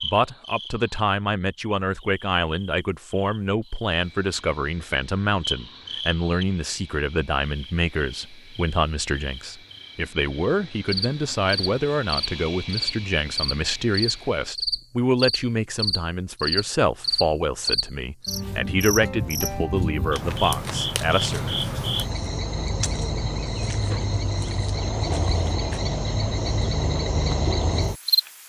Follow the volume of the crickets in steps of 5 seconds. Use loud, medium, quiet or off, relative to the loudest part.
quiet, medium, loud, loud, loud, loud.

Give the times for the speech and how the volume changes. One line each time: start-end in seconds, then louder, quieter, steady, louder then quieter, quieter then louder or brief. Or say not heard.
0.0-21.4 steady.